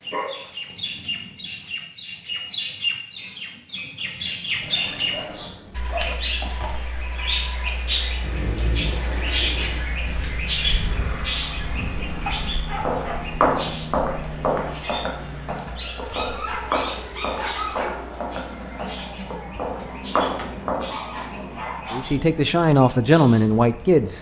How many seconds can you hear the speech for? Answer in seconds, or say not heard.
2 s.